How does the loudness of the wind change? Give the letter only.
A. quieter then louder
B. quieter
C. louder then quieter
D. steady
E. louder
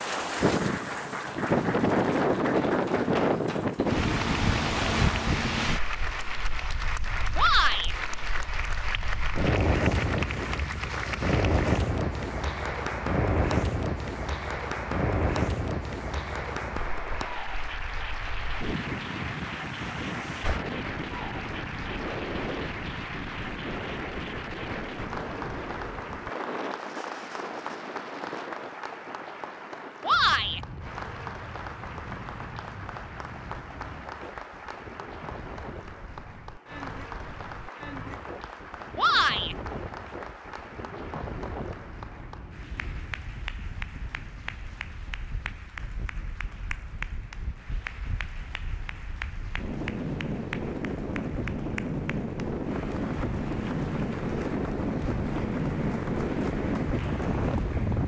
A.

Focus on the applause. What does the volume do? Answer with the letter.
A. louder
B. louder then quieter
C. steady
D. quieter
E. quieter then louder
D.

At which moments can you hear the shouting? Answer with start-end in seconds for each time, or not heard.
7.3-8.0, 30.0-30.6, 39.0-39.5.